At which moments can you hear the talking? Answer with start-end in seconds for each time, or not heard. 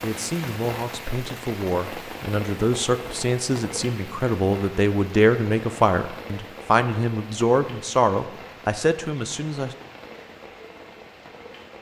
0.0-9.8.